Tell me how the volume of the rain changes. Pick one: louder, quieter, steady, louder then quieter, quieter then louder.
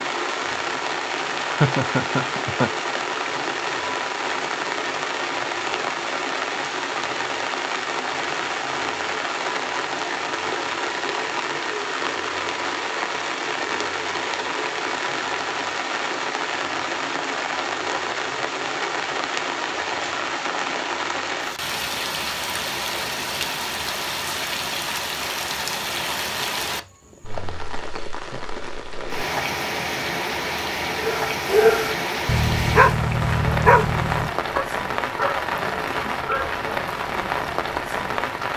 steady.